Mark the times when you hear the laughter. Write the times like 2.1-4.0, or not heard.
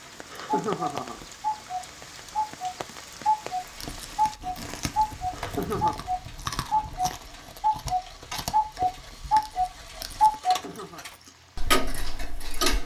0.3-1.2, 5.3-6.0, 10.4-11.1.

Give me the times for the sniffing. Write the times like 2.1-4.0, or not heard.
not heard.